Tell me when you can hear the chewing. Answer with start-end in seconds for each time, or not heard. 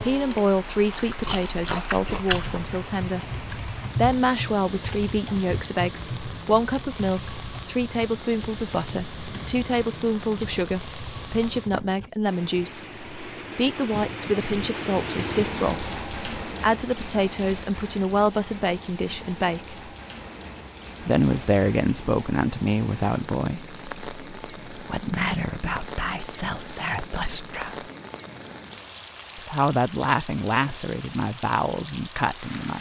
0.0-2.8.